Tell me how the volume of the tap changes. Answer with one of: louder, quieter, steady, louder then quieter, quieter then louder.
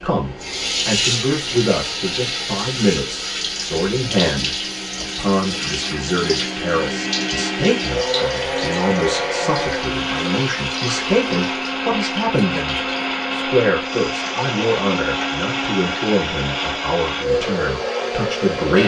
quieter.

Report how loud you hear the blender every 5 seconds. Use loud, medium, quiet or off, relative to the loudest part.
quiet, loud, loud, loud.